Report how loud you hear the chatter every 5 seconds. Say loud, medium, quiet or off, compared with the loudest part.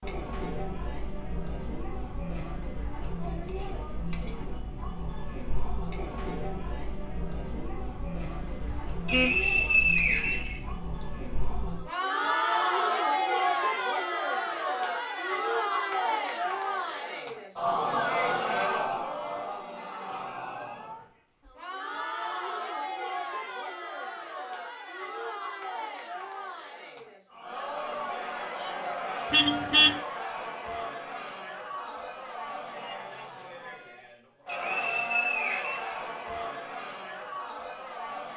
medium, medium, loud, loud, medium, medium, medium, medium.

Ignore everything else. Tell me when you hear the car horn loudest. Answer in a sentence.
The volume of the car horn peaks at 30 seconds.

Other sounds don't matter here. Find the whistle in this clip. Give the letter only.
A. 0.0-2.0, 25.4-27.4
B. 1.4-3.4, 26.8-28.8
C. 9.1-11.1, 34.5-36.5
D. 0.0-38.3
C.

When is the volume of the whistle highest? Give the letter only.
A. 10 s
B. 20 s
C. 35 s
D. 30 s
A.